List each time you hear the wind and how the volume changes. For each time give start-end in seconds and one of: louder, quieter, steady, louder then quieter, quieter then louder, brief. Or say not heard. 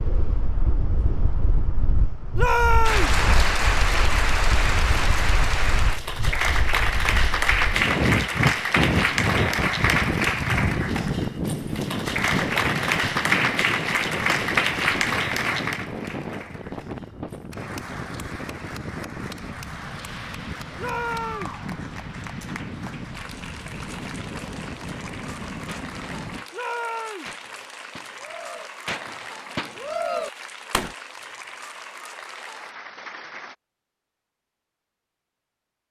0.0-26.4 louder then quieter.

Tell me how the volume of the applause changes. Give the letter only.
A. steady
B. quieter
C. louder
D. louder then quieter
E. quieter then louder
B.